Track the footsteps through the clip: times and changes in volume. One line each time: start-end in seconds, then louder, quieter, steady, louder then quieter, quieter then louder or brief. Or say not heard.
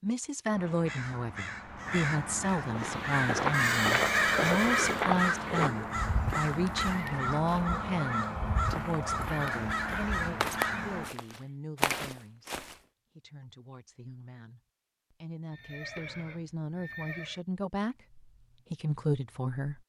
2.7-12.8 quieter then louder.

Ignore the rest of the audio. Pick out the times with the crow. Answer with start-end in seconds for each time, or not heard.
0.5-11.2.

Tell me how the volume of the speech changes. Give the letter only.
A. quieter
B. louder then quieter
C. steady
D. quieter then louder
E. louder
D.